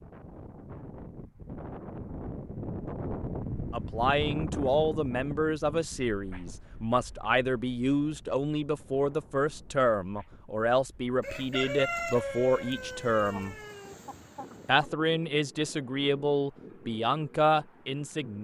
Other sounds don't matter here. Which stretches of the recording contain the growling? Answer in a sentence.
The growling can't be heard in this clip.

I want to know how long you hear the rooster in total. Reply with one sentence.
You can hear the rooster for 4 seconds altogether.